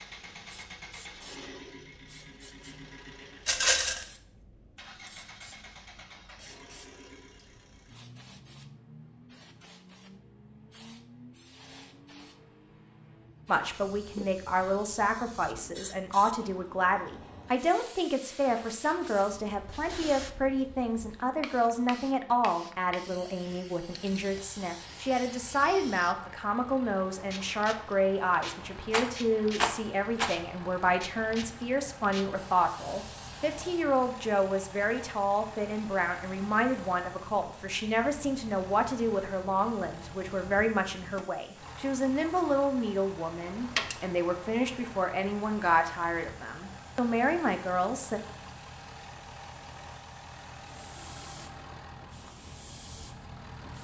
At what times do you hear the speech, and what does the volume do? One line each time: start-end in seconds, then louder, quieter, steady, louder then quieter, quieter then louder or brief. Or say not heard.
13.4-48.2 steady.